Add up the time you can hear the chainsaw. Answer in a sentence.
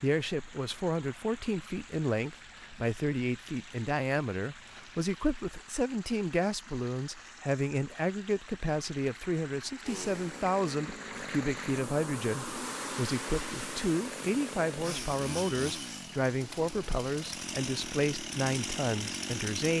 The chainsaw can be heard for 10 seconds in total.